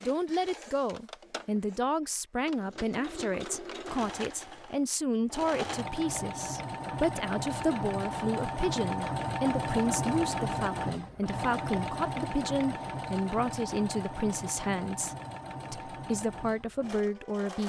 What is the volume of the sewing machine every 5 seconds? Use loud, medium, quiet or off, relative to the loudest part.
medium, loud, loud, medium.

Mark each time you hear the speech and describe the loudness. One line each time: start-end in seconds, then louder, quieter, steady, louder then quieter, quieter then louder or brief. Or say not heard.
0.0-17.6 steady.